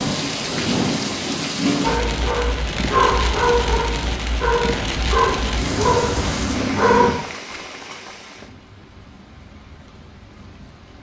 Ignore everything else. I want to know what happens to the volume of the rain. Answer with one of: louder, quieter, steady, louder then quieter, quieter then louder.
quieter.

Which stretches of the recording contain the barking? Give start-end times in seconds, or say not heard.
1.8-7.2.